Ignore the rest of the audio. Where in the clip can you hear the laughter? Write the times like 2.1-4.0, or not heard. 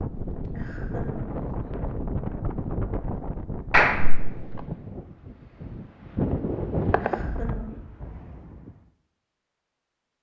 0.6-1.4, 7.0-7.8.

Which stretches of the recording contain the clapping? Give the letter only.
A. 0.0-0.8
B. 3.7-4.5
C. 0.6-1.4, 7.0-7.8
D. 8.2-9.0
B.